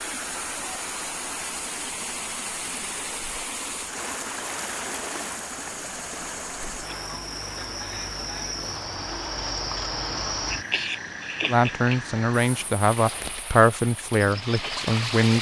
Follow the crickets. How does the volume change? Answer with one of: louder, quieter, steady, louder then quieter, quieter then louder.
louder then quieter.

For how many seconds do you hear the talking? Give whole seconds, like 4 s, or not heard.
4 s.